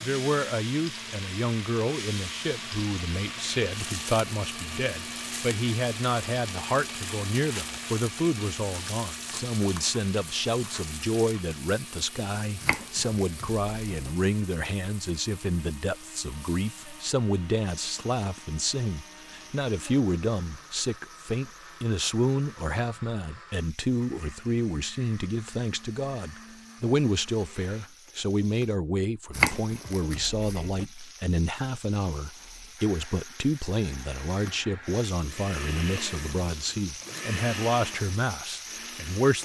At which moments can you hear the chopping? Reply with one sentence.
The chopping can be heard from 12.6 to 14.1 s and from 29.3 to 30.9 s.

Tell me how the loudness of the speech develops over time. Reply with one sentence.
The loudness of the speech stays about the same.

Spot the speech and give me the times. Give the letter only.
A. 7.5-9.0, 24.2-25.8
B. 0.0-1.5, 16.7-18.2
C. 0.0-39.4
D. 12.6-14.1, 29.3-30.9
C.